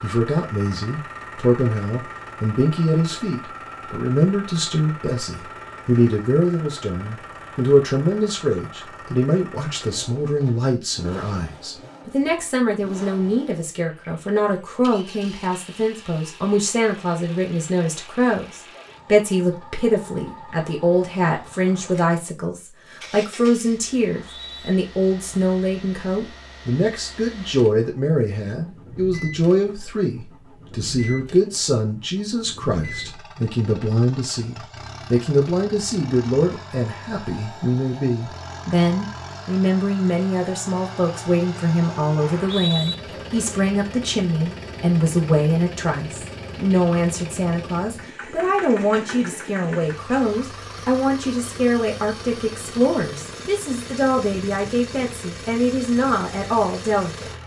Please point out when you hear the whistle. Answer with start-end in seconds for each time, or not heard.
24.0-24.8, 42.2-43.0.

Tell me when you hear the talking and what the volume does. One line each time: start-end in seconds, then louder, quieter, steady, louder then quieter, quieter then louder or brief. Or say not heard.
0.0-57.3 steady.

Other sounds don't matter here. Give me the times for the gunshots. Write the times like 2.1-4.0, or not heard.
not heard.